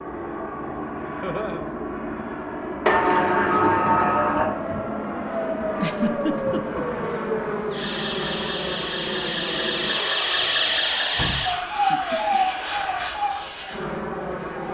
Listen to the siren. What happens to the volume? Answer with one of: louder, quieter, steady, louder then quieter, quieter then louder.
louder.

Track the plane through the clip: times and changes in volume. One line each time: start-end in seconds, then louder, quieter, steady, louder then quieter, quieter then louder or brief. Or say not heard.
0.0-14.6 steady.